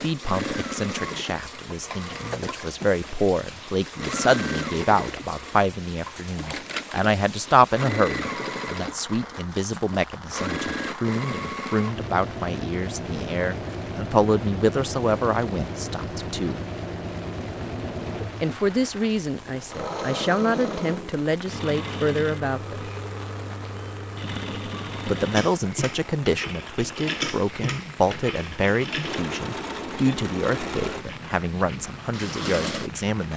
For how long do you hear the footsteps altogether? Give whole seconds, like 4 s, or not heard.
not heard.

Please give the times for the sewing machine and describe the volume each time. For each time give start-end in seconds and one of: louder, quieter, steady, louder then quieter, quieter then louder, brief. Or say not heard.
0.0-33.0 steady.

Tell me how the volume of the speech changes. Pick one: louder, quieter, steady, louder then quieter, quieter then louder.
steady.